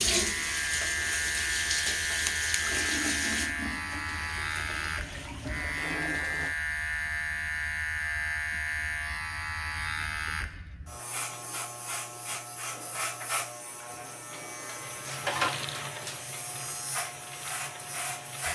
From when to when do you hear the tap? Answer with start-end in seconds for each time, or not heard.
0.0-6.5, 14.8-18.5.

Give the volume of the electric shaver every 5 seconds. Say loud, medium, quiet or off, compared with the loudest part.
loud, loud, medium, loud.